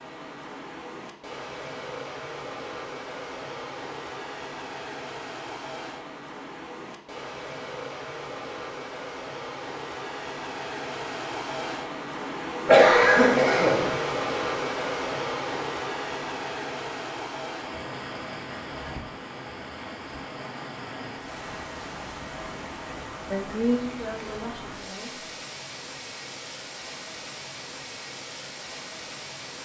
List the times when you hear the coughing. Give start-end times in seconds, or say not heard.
12.7-13.9.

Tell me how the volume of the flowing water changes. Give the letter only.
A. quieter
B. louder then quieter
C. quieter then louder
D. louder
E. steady
B.